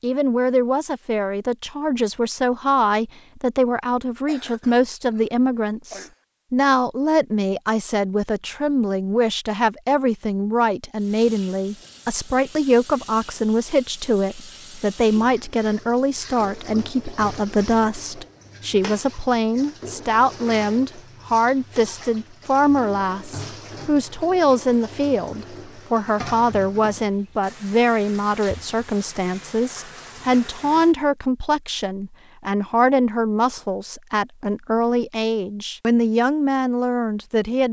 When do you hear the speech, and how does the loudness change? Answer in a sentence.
You can hear the speech from 0.0 to 37.6 s, at a steady volume.